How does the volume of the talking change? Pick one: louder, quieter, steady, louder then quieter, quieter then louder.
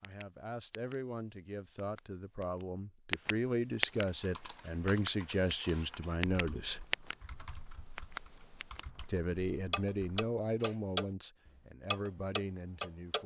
louder then quieter.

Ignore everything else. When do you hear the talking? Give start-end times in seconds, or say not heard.
0.0-6.8, 9.1-13.2.